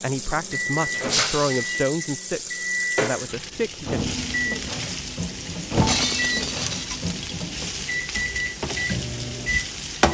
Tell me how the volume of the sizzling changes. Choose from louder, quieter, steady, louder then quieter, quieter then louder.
steady.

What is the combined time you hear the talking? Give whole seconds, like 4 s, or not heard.
4 s.